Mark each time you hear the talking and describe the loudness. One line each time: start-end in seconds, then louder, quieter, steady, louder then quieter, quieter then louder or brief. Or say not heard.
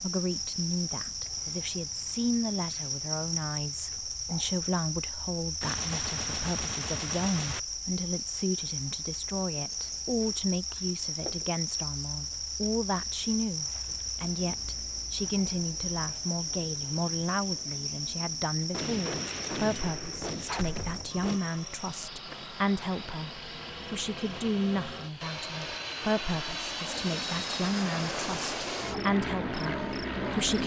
0.0-30.6 steady.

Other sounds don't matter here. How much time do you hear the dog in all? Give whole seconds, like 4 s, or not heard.
not heard.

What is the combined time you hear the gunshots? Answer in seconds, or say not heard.
5 s.